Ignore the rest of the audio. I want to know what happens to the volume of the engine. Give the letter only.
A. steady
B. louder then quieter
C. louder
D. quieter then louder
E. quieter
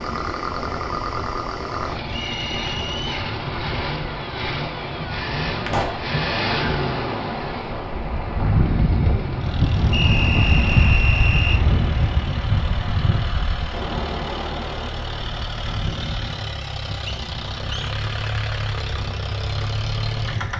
D.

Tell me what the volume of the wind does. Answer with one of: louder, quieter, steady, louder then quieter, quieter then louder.
louder then quieter.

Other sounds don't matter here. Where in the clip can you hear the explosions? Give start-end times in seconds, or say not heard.
5.7-6.1.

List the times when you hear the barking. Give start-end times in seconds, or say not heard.
not heard.